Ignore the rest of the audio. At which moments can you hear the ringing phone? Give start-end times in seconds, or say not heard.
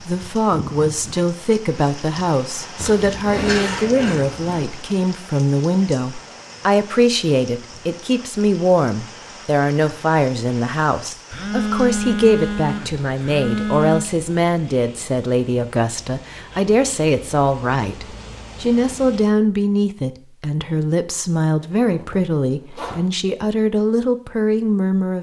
11.3-14.1.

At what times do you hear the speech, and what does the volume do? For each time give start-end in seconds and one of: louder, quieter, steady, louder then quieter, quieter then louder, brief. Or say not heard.
0.0-25.1 steady.